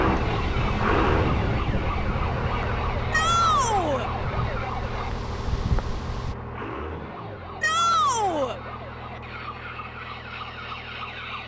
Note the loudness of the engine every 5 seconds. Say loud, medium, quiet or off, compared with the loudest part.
loud, medium, quiet.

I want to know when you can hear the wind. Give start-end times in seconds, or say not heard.
0.0-6.3.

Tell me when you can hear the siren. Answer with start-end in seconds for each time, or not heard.
0.0-5.1, 7.0-11.4.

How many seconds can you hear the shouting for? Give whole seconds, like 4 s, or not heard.
2 s.